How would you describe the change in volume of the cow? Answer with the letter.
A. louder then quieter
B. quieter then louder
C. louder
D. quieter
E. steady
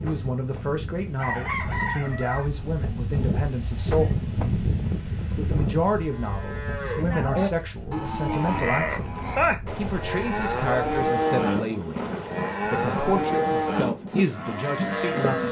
E.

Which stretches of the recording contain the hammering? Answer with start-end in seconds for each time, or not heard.
not heard.